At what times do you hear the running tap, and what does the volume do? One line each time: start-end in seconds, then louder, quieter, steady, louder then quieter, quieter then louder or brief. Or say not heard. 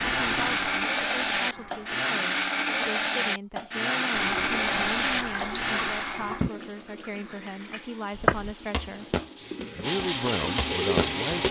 0.0-1.9 brief
4.1-11.4 quieter then louder.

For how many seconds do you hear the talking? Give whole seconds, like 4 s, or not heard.
11 s.